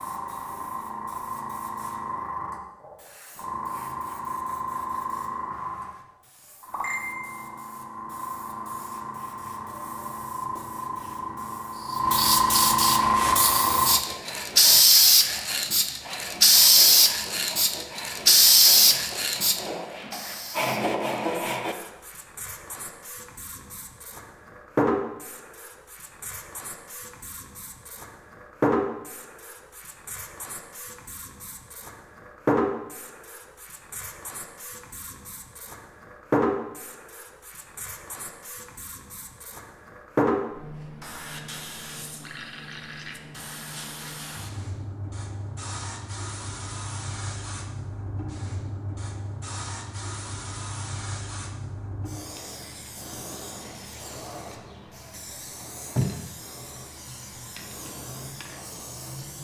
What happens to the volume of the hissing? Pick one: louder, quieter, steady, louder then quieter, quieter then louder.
louder then quieter.